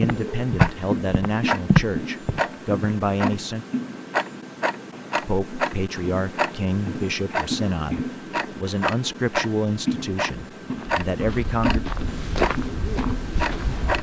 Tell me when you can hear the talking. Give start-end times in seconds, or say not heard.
0.0-3.6, 5.2-11.8.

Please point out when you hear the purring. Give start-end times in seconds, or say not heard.
not heard.